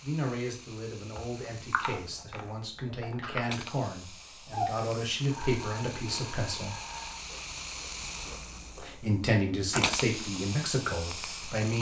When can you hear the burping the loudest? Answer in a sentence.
The volume of the burping peaks at 5 seconds.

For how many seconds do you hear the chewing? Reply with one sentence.
You can hear the chewing for 5 seconds altogether.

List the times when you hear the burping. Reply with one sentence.
You can hear the burping from 4.5 to 7.2 s.